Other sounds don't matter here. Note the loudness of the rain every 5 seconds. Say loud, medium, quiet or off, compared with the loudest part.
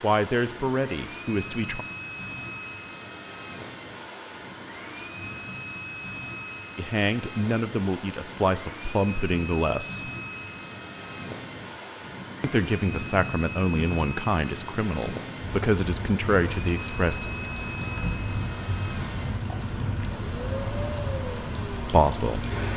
quiet, medium, medium, loud, loud.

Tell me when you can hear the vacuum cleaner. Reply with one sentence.
The vacuum cleaner can be heard from 0.0 to 22.7 s.